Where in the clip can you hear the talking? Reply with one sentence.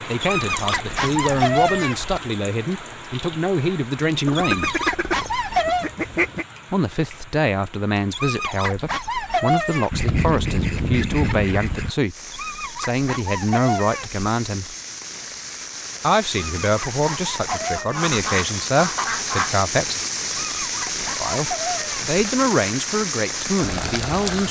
You can hear the talking from 0.1 to 4.8 s, from 6.7 to 14.8 s, from 16.0 to 20.0 s and from 21.2 to 24.4 s.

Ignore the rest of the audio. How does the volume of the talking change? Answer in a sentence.
The loudness of the talking stays about the same.